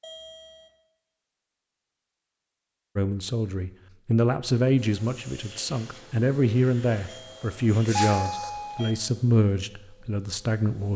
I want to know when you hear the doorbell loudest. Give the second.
8 s.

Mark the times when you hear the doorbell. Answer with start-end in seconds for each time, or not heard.
0.0-0.7, 7.0-8.9.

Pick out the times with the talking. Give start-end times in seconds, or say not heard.
3.0-10.9.